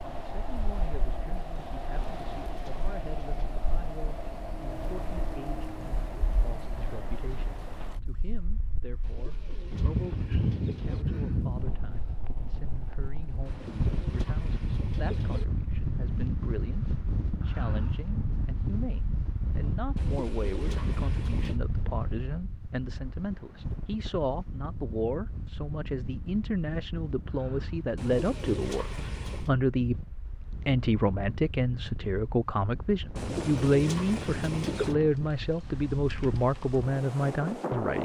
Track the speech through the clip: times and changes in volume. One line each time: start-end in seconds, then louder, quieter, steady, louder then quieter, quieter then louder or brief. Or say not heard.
0.0-37.9 louder.